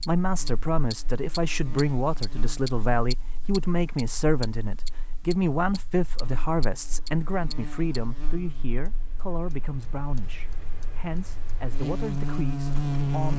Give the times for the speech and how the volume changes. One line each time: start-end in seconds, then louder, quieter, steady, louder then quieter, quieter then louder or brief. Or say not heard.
0.1-13.3 quieter.